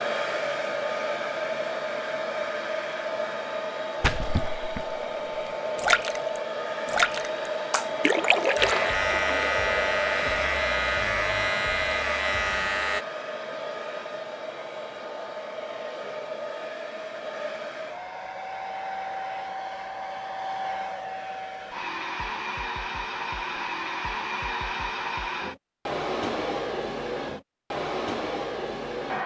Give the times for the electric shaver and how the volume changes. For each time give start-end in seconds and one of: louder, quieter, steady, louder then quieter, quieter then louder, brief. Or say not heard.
8.6-13.1 steady.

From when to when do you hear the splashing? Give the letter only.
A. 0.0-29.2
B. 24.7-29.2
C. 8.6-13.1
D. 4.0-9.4
D.